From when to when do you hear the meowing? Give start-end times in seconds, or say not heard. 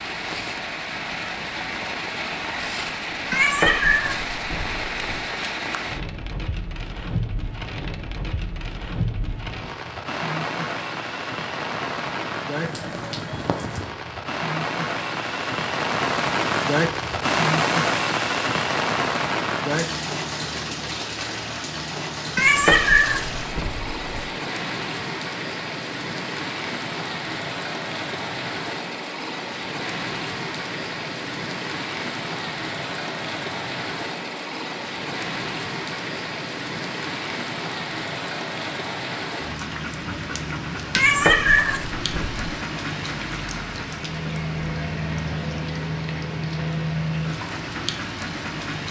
3.3-5.2, 22.4-24.3, 41.0-42.5.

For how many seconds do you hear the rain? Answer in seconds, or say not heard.
49 s.